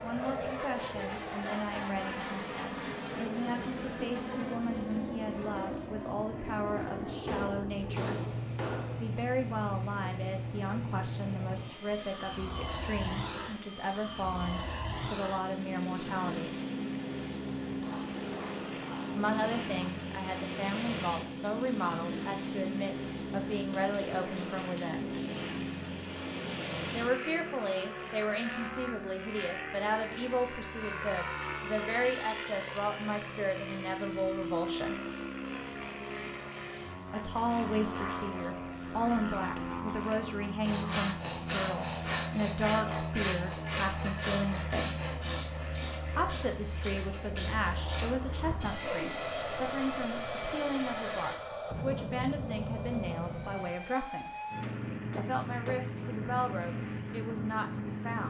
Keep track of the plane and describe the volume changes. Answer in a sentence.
The volume of the plane stays about the same.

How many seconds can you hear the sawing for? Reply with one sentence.
The sawing can be heard for 11 seconds in total.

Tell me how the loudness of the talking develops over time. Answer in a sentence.
The loudness of the talking stays about the same.